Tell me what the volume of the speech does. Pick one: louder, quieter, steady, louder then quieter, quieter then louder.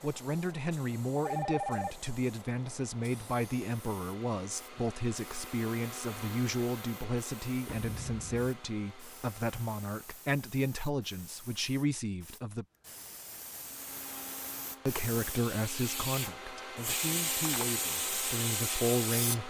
steady.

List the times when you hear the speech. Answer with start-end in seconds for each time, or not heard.
0.0-12.7, 14.8-19.4.